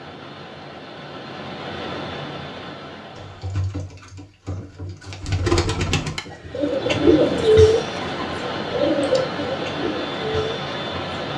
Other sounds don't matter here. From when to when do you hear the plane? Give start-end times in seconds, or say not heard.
0.0-3.6, 6.5-11.3.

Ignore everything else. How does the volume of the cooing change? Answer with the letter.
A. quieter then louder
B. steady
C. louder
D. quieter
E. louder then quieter
E.